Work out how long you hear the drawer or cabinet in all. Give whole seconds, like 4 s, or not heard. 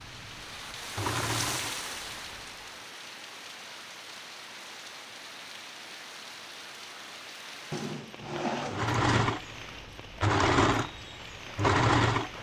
2 s.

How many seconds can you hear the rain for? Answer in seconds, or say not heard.
12 s.